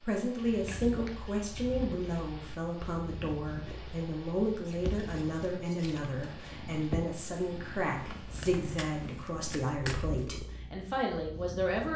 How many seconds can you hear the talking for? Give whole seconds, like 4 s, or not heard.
12 s.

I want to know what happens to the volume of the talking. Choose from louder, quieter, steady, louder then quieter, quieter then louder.
steady.